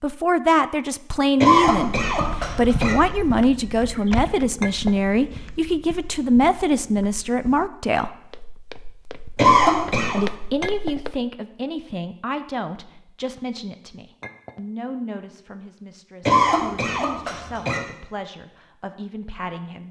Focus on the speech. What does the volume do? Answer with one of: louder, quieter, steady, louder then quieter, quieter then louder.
quieter.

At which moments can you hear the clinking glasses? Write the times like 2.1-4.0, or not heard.
4.6-5.0, 10.6-11.0, 14.2-14.6.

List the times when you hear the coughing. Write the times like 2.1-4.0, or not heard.
1.4-3.0, 9.3-10.2, 16.2-17.8.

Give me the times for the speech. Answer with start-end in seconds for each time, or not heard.
0.0-8.2, 10.1-19.8.